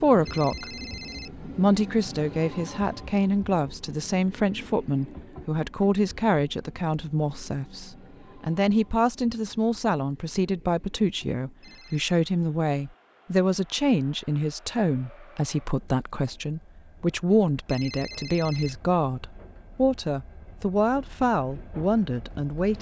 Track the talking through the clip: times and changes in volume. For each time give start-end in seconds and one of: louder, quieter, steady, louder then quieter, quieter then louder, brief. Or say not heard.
0.0-22.7 steady.